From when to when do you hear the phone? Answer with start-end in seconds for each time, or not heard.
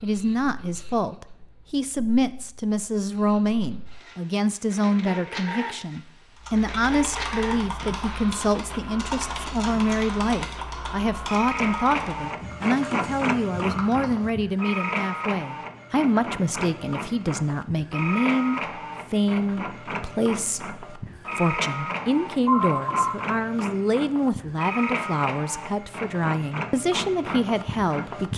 21.9-23.1.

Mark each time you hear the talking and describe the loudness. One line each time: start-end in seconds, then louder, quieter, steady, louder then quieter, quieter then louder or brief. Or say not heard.
0.0-28.3 steady.